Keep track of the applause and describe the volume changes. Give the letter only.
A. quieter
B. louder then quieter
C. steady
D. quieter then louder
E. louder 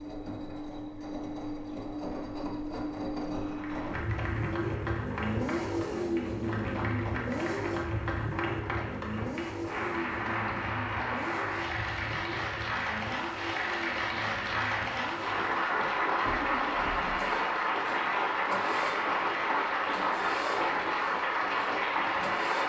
E.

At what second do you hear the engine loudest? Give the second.
6 s.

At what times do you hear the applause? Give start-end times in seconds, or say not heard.
3.5-22.6.